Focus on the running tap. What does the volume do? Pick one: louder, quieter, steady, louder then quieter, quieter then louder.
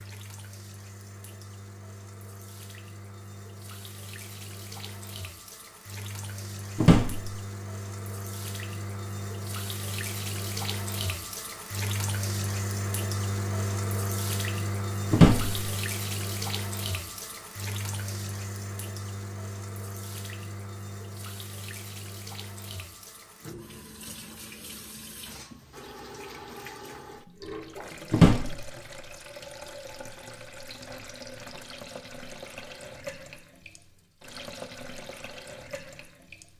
louder then quieter.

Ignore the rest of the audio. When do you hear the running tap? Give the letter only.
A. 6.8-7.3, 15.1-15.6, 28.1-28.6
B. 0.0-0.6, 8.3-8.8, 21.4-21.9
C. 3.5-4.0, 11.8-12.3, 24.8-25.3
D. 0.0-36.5
D.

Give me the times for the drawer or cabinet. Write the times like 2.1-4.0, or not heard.
6.8-7.3, 15.1-15.6, 28.1-28.6.